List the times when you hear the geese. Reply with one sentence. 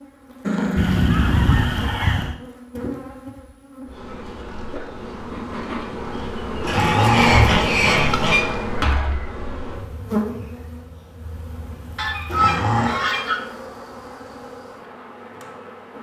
The geese can be heard from 0.8 to 2.4 s, from 6.7 to 8.4 s and from 11.9 to 13.4 s.